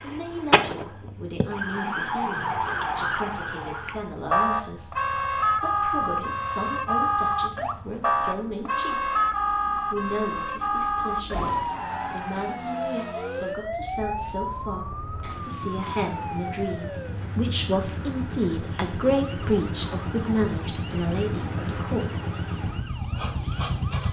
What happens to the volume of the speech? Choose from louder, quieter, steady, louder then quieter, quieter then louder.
louder.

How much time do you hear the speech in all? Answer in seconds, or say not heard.
21 s.